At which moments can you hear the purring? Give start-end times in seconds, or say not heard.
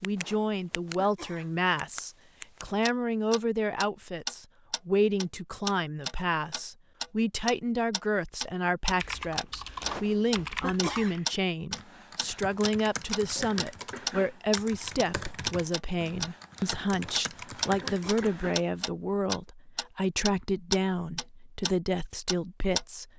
not heard.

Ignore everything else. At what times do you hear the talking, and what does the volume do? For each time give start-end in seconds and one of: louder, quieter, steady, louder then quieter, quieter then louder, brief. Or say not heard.
0.0-23.1 steady.